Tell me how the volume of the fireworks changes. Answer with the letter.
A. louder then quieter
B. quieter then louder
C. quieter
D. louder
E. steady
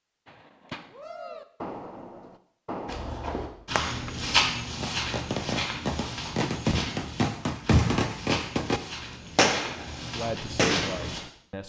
D.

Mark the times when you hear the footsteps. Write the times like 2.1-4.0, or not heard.
2.9-11.2.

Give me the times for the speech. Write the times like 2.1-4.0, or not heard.
10.0-11.6.